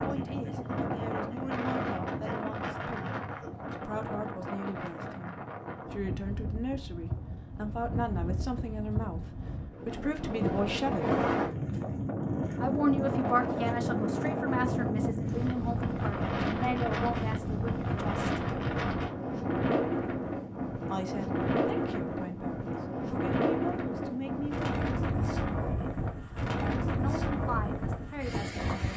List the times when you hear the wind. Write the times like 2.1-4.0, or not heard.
0.0-28.9.